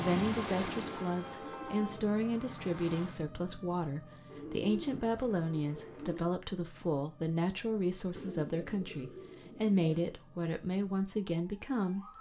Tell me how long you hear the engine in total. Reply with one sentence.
You can hear the engine for 3 seconds altogether.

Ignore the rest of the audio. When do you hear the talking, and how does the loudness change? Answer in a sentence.
The talking can be heard from 0.0 to 12.1 s, at a steady volume.